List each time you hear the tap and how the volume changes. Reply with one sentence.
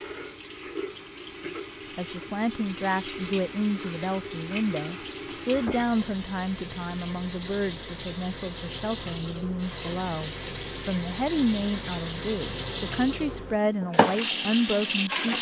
The tap can be heard from 0.0 to 15.3 s, getting louder.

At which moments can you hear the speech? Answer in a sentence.
You can hear the speech from 1.9 to 15.3 s.